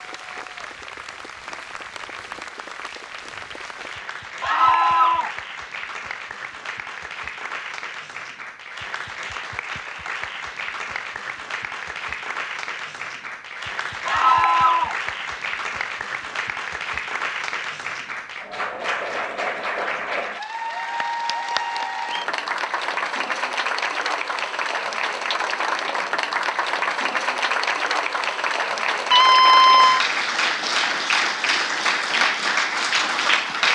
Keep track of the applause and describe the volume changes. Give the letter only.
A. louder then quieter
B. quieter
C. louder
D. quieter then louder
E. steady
C.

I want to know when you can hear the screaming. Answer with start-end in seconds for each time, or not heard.
4.4-5.3, 14.1-14.9, 29.1-30.1.